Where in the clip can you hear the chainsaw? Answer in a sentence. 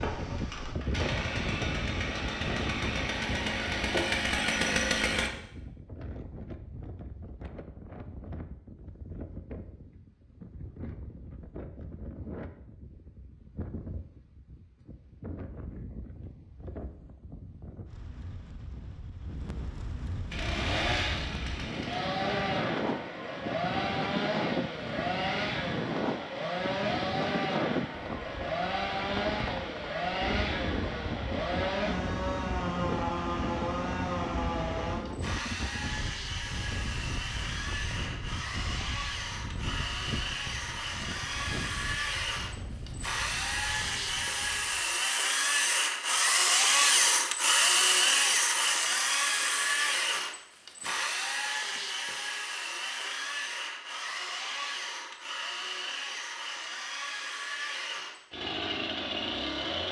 You can hear the chainsaw from 0.0 to 5.3 s and from 20.3 to 59.8 s.